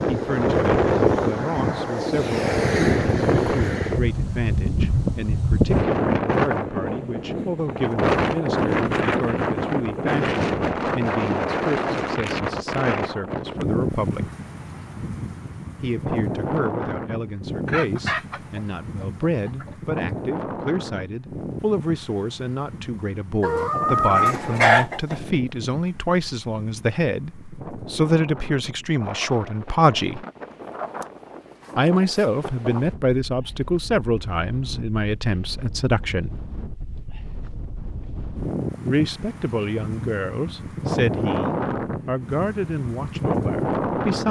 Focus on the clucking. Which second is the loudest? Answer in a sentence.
The volume of the clucking peaks at 25 seconds.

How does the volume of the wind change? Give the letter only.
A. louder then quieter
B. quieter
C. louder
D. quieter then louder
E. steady
D.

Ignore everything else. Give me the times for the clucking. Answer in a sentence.
You can hear the clucking from 17.6 to 19.8 s and from 23.4 to 25.1 s.